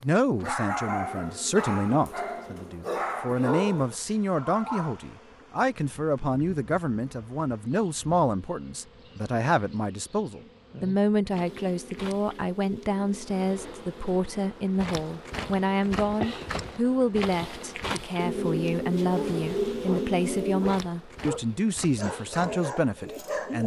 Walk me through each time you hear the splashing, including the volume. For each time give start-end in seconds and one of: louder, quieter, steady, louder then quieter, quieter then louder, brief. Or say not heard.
not heard.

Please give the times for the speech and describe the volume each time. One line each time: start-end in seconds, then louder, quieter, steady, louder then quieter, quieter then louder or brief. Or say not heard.
0.0-23.6 steady.